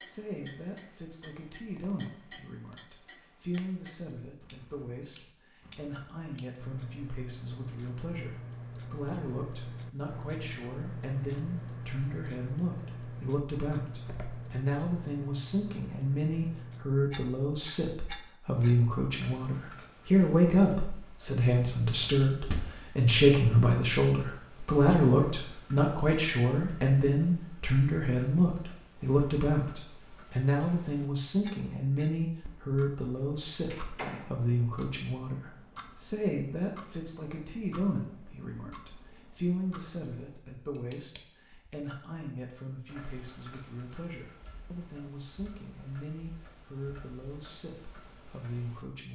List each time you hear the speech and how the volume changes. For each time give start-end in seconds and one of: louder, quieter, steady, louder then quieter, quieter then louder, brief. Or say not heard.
0.0-49.1 louder then quieter.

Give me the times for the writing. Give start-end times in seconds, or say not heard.
not heard.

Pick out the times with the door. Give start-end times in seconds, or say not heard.
14.1-14.6, 22.0-22.6, 33.7-34.4.